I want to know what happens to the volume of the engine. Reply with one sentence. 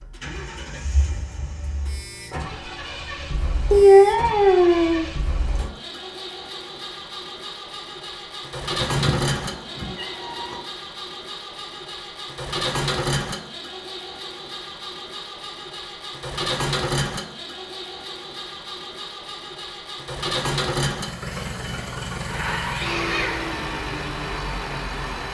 The loudness of the engine goes up.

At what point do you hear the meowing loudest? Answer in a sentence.
The loudest moment of the meowing is at 4 seconds.